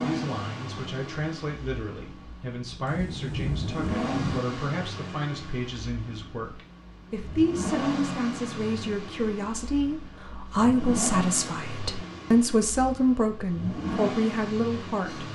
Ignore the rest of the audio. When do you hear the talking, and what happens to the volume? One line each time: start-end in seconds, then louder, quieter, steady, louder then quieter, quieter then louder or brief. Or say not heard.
0.0-15.2 louder.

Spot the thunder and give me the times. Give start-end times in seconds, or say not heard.
2.9-4.4.